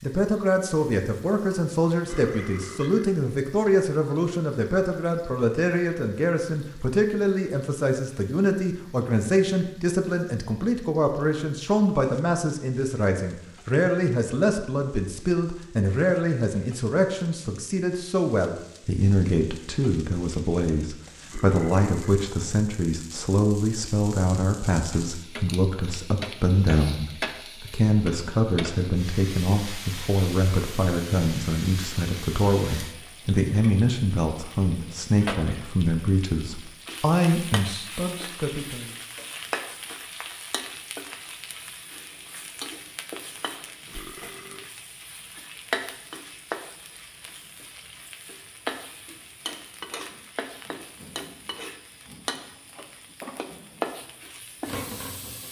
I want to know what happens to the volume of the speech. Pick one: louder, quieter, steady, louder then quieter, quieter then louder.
steady.